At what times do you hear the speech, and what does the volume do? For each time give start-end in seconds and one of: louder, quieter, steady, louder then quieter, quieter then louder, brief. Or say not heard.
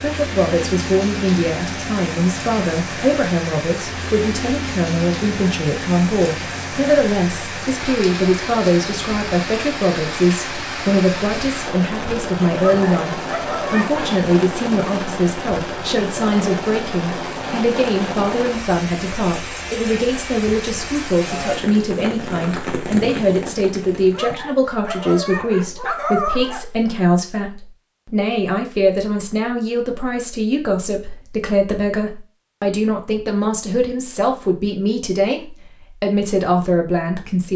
0.0-37.5 steady.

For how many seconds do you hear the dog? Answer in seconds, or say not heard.
4 s.